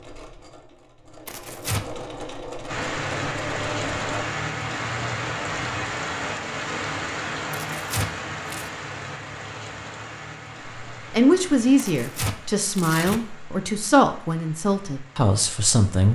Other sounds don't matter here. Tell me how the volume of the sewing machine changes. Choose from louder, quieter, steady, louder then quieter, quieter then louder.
louder.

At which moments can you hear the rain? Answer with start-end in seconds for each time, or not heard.
2.6-16.1.